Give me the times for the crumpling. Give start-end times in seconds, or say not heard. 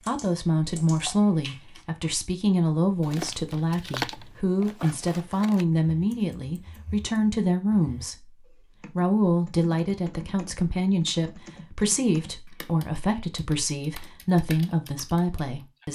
3.0-5.7.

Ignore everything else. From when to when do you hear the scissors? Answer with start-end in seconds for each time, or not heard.
not heard.